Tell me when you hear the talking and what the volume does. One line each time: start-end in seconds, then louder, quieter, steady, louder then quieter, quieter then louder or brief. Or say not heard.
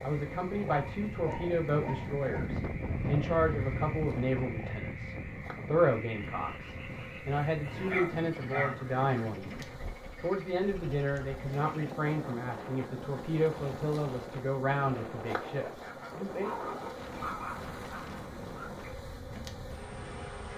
0.0-16.6 steady.